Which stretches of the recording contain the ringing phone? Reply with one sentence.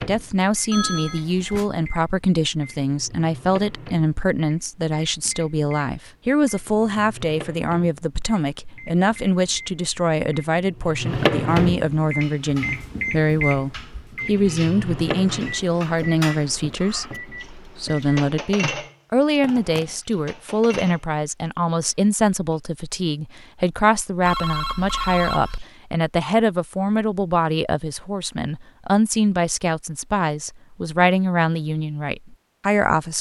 You can hear the ringing phone from 0.7 to 1.6 s, from 19.4 to 19.9 s and from 24.2 to 25.7 s.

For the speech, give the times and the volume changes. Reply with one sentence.
The speech can be heard from 0.0 to 33.1 s, at a steady volume.